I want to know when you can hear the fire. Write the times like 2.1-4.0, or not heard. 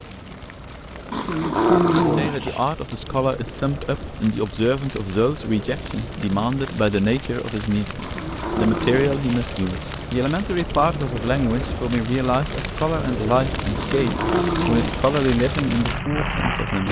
0.0-16.8.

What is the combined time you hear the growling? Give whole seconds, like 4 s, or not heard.
4 s.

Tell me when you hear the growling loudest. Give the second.
2 s.